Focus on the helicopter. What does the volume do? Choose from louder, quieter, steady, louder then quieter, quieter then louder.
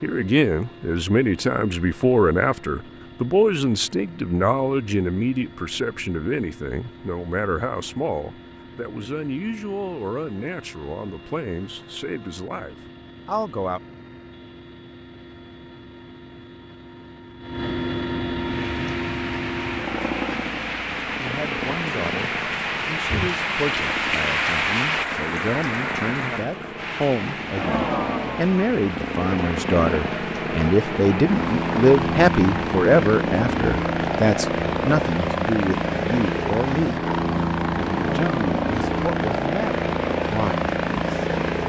louder.